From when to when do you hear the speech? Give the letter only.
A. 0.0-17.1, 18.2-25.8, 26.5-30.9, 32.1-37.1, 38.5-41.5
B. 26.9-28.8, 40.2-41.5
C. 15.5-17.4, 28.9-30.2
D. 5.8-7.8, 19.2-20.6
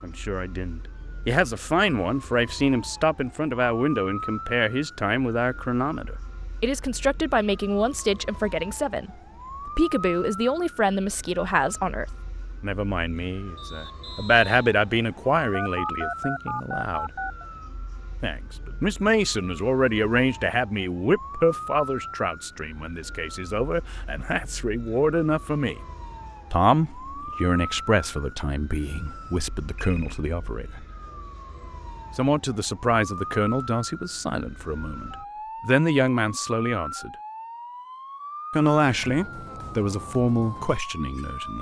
A.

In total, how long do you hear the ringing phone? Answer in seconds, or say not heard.
3 s.